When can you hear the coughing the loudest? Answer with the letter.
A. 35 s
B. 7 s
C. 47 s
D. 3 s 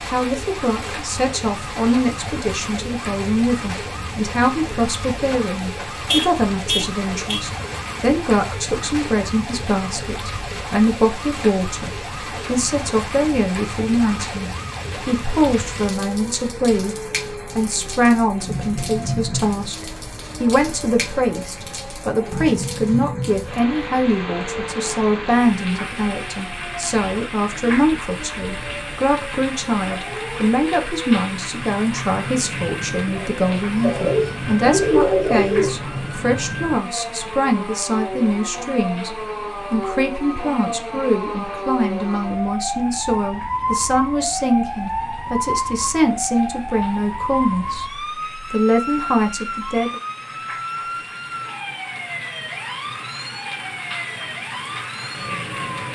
A.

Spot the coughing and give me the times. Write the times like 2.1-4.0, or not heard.
33.0-35.8.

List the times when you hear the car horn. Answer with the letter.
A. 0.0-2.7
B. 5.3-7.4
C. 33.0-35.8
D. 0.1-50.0
B.